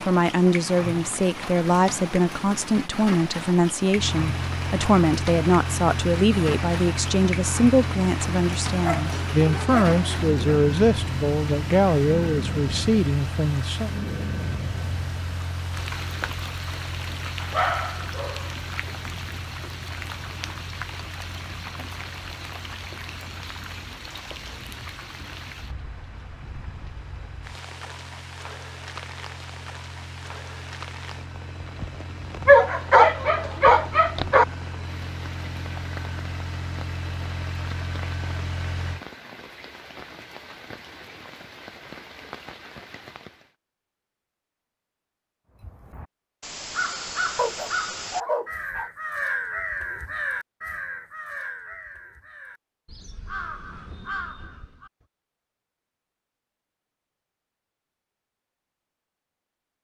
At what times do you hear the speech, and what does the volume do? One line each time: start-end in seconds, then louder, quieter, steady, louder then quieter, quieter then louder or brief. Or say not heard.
0.0-13.9 steady.